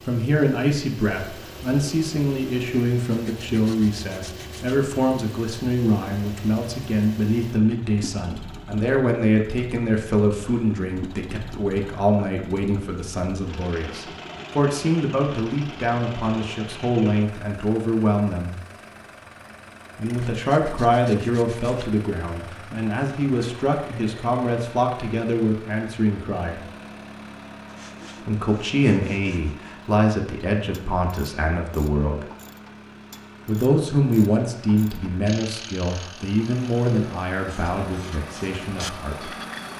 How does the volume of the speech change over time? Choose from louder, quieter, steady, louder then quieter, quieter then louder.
steady.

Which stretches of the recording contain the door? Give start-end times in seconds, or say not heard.
not heard.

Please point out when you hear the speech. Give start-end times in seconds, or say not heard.
0.1-18.6, 19.9-26.6, 28.2-32.2, 33.5-39.4.